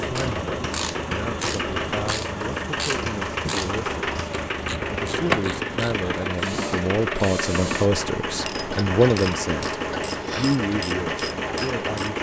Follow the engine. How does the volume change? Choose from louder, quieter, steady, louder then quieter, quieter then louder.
steady.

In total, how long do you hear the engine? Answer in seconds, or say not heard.
12 s.